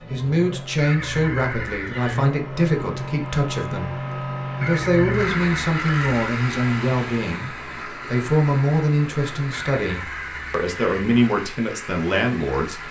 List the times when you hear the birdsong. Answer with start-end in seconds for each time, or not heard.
not heard.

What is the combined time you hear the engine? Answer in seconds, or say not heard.
13 s.